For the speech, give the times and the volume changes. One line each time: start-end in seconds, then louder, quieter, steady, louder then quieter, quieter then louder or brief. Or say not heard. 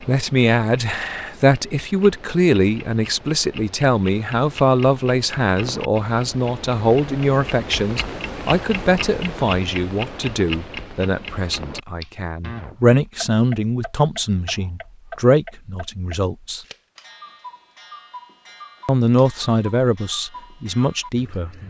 0.1-16.6 steady
18.9-21.6 brief.